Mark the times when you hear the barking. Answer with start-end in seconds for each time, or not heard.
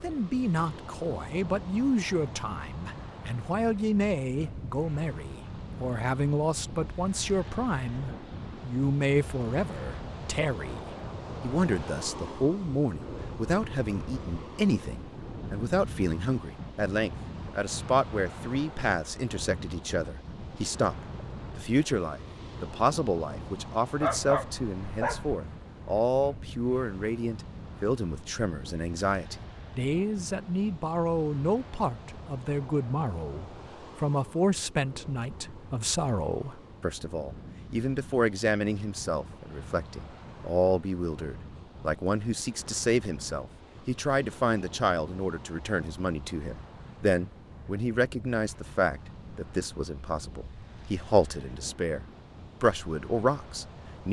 24.0-25.4.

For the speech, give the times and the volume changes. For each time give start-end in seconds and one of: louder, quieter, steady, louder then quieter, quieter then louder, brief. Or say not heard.
0.0-10.8 steady
11.4-54.0 steady.